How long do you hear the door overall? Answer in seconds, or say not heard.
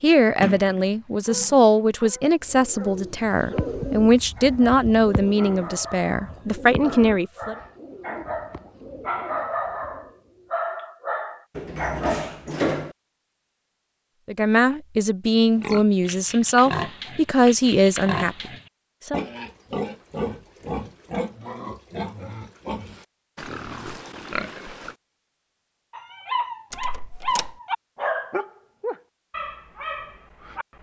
3 s.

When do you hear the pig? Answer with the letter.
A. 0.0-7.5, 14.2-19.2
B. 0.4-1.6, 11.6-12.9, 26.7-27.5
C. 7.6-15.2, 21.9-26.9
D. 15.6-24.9
D.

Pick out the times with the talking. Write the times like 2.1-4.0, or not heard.
0.0-7.5, 14.2-19.2.